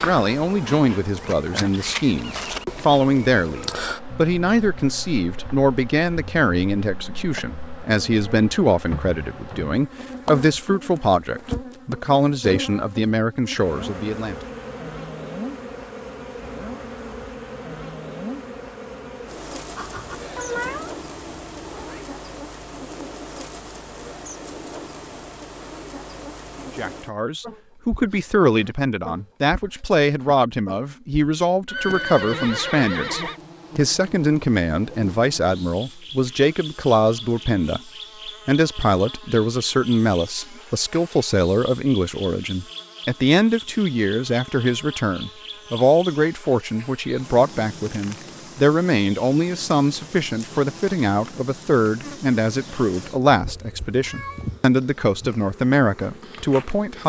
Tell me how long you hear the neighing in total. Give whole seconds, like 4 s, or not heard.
2 s.